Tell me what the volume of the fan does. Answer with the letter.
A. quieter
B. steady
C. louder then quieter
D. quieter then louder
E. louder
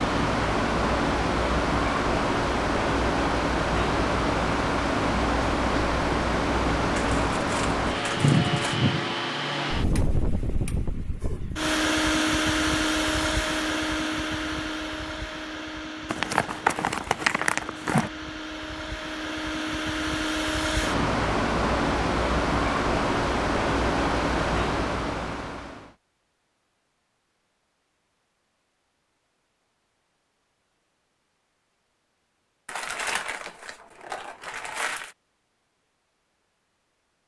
D.